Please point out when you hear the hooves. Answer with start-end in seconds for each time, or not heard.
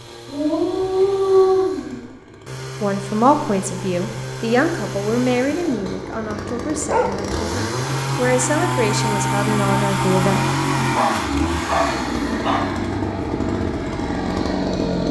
not heard.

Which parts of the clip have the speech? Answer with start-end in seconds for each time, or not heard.
2.8-10.4.